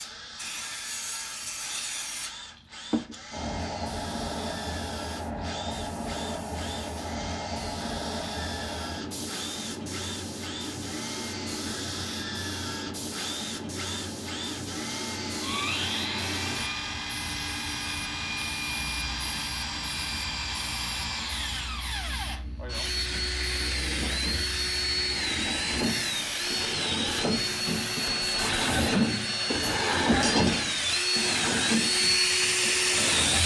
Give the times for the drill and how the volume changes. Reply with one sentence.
The drill can be heard from 0.0 to 33.4 s, getting louder.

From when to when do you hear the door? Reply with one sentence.
You can't hear the door here.